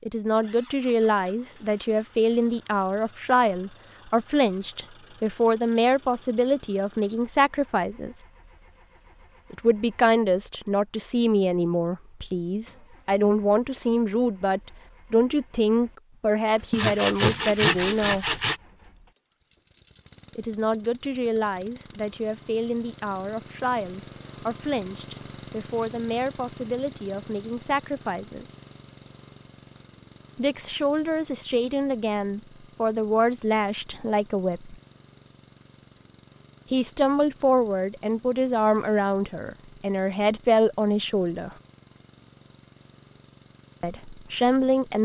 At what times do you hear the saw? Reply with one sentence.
You can hear the saw from 16.7 to 18.6 s.